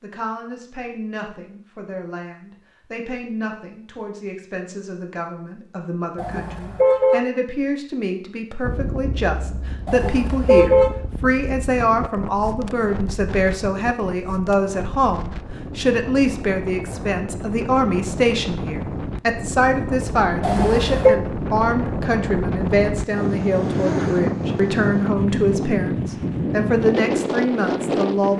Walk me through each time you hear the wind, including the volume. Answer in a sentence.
The wind can be heard from 8.6 to 28.3 s, getting louder.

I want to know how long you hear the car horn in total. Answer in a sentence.
The car horn can be heard for 3 seconds in total.